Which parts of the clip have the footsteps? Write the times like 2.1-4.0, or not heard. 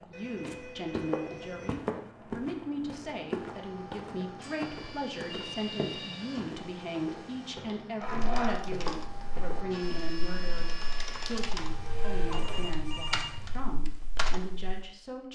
0.0-10.8.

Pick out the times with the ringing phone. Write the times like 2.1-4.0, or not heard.
0.1-1.8, 5.2-7.5, 11.6-13.7.